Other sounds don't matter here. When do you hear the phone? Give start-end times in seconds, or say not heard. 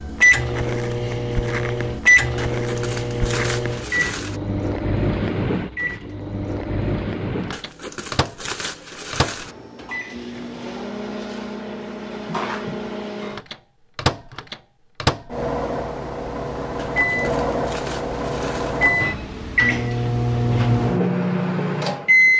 not heard.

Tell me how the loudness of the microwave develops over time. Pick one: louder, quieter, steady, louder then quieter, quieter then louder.
quieter then louder.